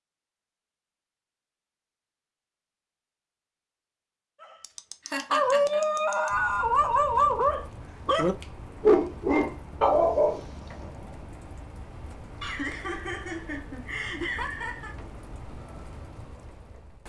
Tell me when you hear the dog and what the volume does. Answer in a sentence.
The dog can be heard from 4.4 to 10.9 s, at a steady volume.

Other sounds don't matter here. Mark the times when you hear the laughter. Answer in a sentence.
You can hear the laughter from 5.0 to 5.8 s and from 12.4 to 14.9 s.